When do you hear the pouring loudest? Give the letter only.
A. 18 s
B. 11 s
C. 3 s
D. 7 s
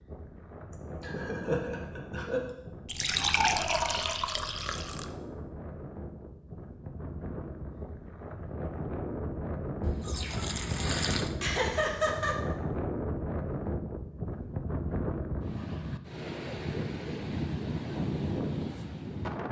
C.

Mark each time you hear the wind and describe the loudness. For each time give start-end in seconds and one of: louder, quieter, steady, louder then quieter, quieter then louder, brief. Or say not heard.
0.0-19.4 louder.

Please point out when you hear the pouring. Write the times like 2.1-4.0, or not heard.
2.9-5.1, 9.8-11.3.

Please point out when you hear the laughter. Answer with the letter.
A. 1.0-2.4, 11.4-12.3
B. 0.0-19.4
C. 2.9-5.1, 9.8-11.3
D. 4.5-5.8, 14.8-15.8
A.